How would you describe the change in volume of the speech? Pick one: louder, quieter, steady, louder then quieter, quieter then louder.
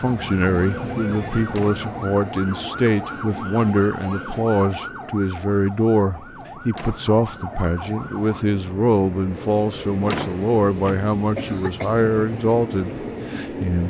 steady.